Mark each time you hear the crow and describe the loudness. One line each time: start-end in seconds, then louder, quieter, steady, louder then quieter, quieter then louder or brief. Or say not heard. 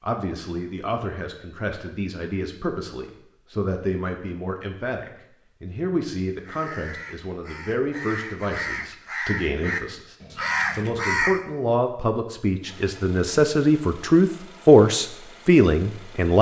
6.2-11.4 louder.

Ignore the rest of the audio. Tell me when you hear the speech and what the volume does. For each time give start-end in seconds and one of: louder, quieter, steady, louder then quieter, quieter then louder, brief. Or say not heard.
0.0-16.3 louder.